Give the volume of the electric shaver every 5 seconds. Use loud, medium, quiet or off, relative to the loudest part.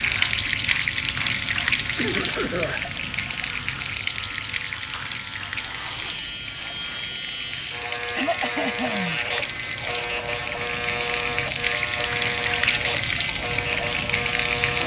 medium, loud, loud.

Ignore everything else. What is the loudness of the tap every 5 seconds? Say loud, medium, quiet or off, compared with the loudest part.
loud, medium, loud.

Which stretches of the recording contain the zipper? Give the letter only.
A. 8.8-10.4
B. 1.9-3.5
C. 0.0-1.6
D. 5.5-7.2
D.